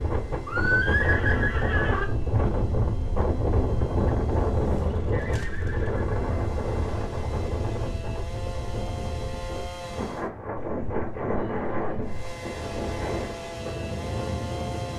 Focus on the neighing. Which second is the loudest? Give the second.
1 s.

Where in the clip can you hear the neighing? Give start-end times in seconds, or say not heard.
0.5-2.0, 5.1-6.3, 10.6-12.1.